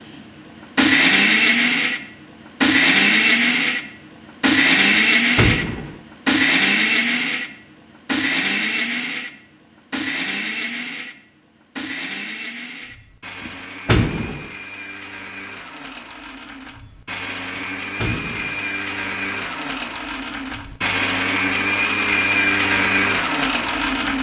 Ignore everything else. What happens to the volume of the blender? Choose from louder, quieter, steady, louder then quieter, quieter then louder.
quieter then louder.